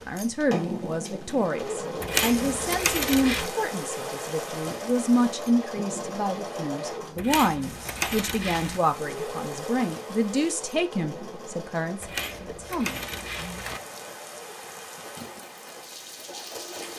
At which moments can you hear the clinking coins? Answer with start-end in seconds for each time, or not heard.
2.0-3.5, 7.2-8.8, 12.0-13.8.